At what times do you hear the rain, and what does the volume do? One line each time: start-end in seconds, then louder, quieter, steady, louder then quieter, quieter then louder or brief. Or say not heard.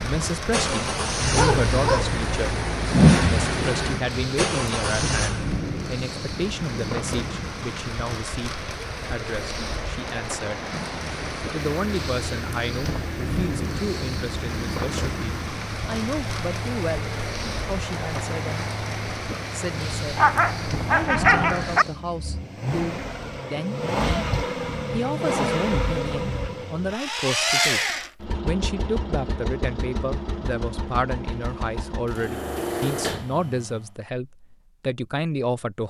0.0-22.0 steady.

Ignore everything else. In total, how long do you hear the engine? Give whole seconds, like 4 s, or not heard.
29 s.